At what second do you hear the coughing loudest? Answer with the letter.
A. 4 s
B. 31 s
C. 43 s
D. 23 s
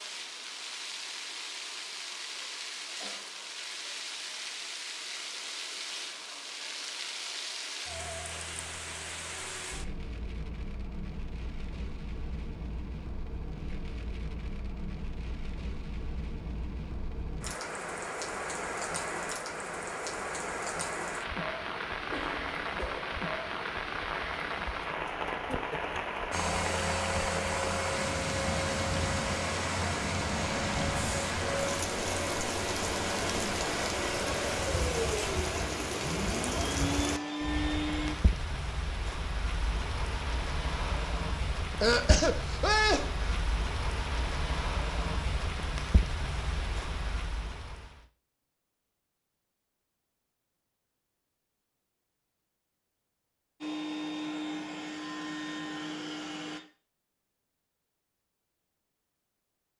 C.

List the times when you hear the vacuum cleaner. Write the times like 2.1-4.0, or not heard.
26.3-38.1, 53.6-56.6.